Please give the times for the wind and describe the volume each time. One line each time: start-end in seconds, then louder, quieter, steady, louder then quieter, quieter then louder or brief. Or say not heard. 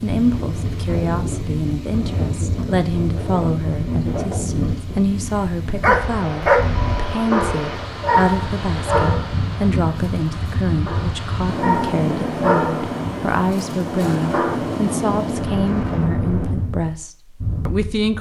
0.0-18.1 steady.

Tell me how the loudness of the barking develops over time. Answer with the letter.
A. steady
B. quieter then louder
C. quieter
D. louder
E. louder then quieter
C.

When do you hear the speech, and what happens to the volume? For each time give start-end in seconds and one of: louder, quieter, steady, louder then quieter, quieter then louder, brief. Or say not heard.
0.0-18.1 steady.